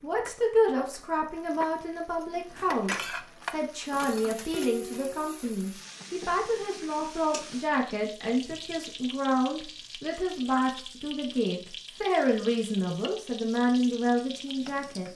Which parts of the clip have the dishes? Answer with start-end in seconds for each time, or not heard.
2.4-5.3.